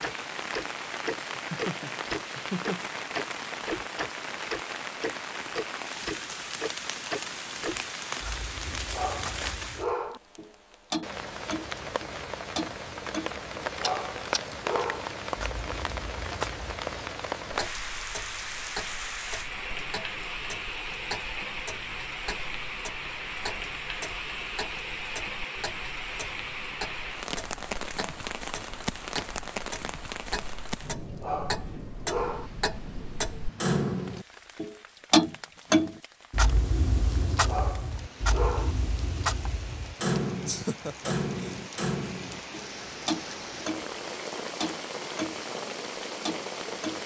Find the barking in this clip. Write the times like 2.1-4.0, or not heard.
8.8-10.2, 13.6-15.1, 31.0-32.5, 37.3-38.8.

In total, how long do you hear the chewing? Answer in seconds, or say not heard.
not heard.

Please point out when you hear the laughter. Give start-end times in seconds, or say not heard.
1.4-2.9, 40.5-41.6.